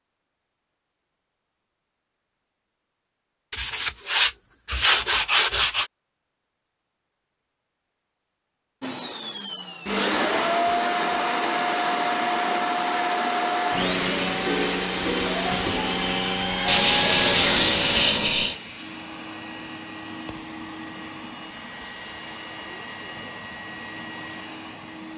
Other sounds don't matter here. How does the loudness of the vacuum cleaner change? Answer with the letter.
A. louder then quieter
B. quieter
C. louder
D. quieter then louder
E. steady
B.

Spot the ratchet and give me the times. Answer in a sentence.
The ratchet can't be heard in this clip.